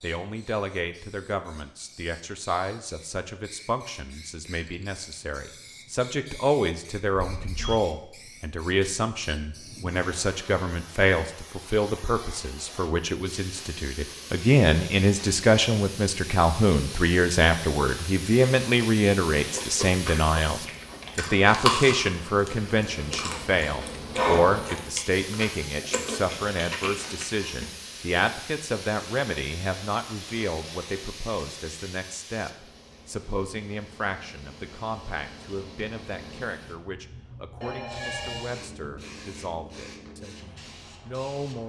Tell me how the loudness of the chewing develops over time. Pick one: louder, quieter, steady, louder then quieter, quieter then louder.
louder then quieter.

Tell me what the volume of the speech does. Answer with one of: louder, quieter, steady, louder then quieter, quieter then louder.
louder then quieter.